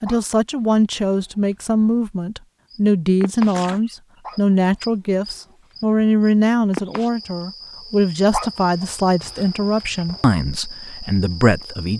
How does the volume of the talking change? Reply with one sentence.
The volume of the talking stays about the same.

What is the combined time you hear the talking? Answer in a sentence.
You can hear the talking for 12 seconds altogether.